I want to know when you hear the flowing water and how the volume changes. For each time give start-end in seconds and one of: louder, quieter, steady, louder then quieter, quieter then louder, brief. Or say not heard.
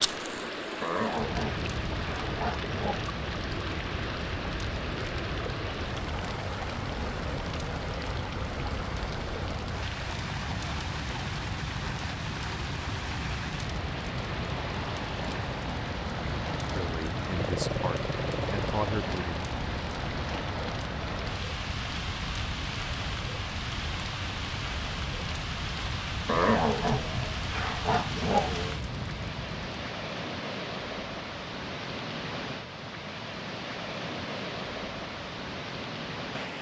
0.0-36.5 steady.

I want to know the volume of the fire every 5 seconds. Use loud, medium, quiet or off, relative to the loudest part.
loud, loud, loud, loud, loud, loud, off, off.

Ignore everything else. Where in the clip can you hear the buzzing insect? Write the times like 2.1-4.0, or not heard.
not heard.